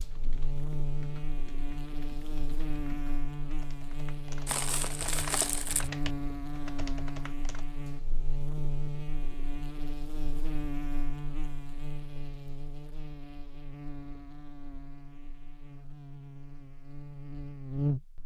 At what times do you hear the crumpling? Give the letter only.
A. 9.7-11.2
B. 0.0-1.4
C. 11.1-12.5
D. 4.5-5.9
D.